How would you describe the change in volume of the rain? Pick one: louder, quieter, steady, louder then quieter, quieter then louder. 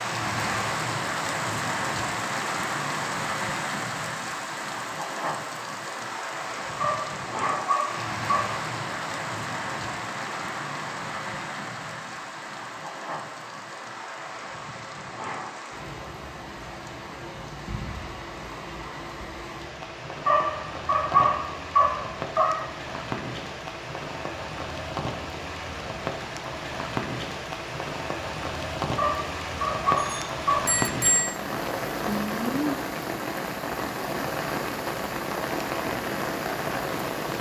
quieter then louder.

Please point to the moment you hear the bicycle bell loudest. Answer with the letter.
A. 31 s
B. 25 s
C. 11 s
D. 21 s
A.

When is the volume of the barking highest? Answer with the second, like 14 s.
21 s.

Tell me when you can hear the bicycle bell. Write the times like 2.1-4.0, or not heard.
29.9-31.4.